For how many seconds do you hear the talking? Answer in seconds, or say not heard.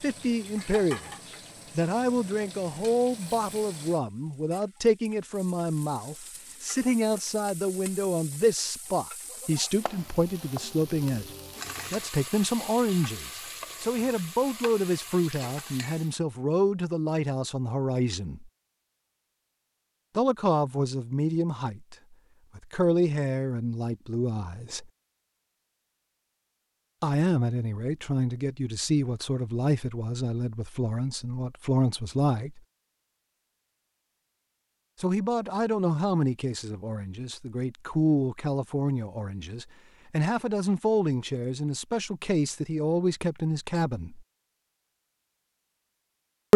37 s.